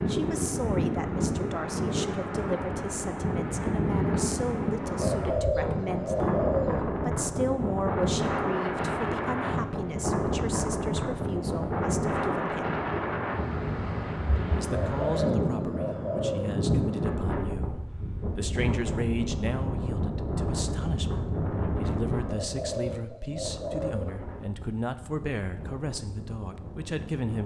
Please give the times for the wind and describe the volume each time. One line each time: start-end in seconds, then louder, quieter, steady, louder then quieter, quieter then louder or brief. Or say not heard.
0.0-27.4 quieter.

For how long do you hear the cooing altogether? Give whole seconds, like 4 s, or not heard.
6 s.